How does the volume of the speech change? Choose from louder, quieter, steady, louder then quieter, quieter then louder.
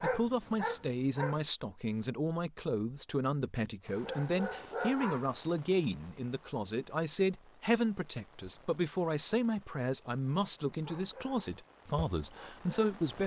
steady.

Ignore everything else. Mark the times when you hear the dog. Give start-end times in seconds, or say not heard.
0.0-2.0, 4.0-5.3, 10.8-12.9.